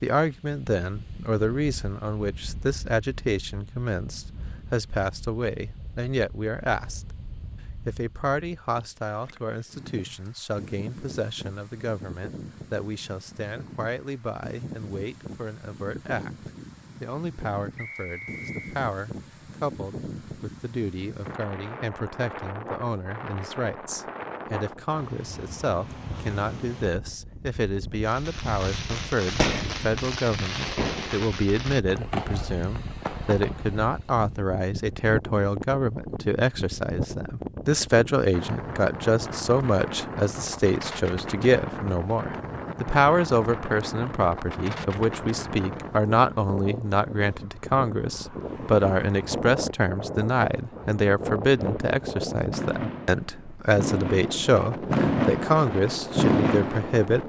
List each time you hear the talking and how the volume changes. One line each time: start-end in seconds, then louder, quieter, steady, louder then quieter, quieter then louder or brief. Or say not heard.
0.0-7.2 steady
7.8-57.2 louder.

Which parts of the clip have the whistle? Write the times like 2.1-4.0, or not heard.
17.8-18.8.